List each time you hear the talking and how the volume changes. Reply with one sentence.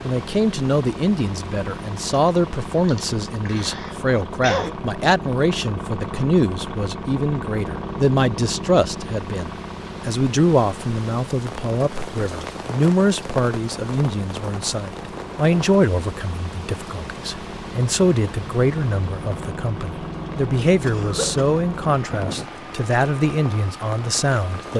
You can hear the talking from 0.0 to 24.7 s, at a steady volume.